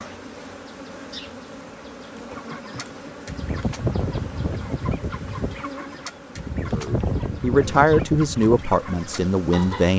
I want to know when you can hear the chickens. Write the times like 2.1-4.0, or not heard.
2.3-9.9.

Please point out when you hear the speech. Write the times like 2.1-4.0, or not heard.
6.7-9.9.